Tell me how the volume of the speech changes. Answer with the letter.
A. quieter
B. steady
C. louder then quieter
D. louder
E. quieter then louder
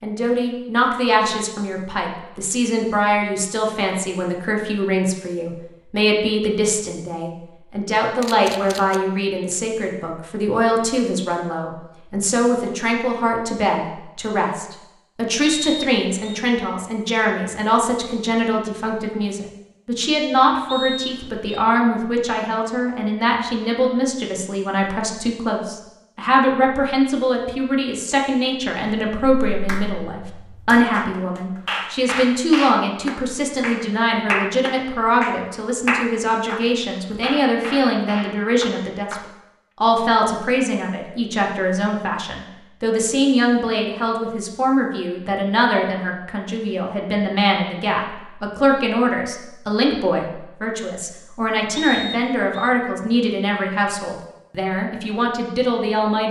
B.